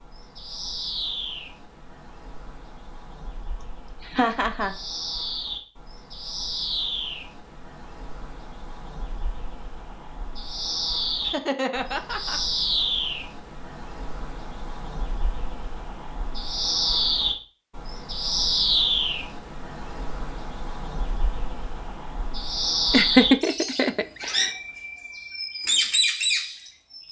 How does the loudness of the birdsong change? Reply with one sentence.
The loudness of the birdsong goes up.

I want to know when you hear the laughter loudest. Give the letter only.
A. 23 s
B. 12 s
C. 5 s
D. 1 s
A.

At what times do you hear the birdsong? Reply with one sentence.
You can hear the birdsong from 0.0 to 27.0 s.